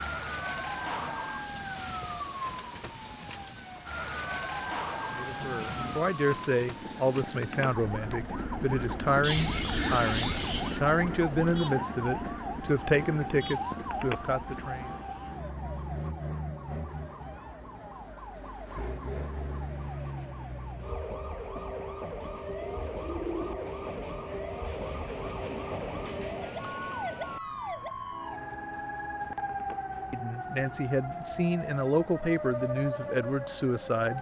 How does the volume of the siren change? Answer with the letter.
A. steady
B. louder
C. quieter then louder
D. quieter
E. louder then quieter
A.